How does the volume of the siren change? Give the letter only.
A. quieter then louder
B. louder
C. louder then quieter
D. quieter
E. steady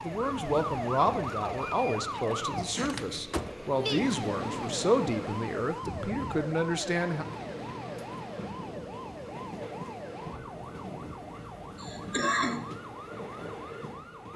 D.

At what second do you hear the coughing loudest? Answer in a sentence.
The volume of the coughing peaks at 12 seconds.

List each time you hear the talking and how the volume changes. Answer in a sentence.
You can hear the talking from 0.0 to 7.2 s, at a steady volume.